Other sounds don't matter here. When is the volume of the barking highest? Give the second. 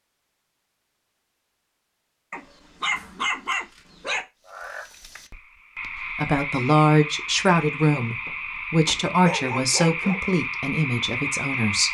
3 s.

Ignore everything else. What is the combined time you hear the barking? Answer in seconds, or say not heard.
3 s.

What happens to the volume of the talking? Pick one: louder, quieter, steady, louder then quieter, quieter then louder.
quieter.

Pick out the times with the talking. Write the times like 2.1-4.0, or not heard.
6.2-11.8.